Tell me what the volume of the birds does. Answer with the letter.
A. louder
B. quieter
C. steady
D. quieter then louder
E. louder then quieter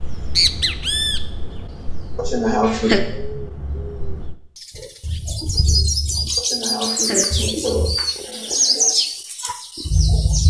D.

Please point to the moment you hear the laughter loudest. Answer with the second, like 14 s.
3 s.